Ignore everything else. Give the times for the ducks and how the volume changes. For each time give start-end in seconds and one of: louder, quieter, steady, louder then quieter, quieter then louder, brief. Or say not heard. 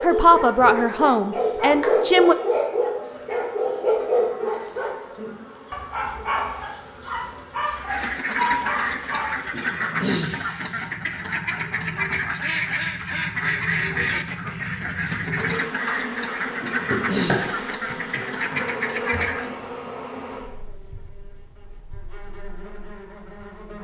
7.8-19.6 steady.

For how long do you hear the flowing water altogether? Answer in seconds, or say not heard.
not heard.